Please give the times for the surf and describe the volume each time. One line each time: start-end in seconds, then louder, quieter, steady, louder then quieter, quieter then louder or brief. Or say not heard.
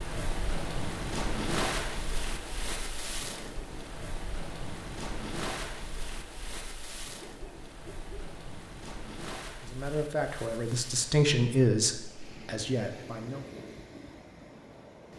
0.0-15.1 quieter.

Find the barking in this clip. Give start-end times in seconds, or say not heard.
7.2-8.3.